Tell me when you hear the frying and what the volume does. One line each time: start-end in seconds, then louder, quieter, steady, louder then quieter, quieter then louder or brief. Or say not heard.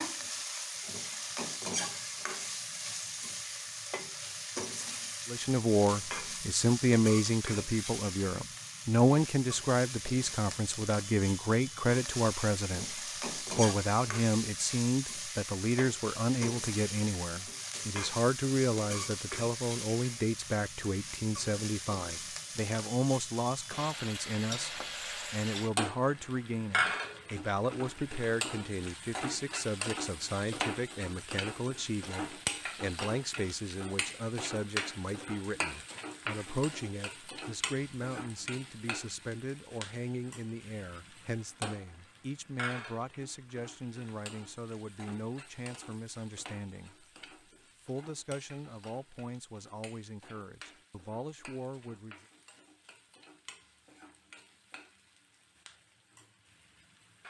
0.0-57.2 quieter.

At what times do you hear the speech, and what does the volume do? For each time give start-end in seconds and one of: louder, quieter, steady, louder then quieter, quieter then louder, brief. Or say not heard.
5.2-47.0 quieter
47.8-52.2 quieter then louder.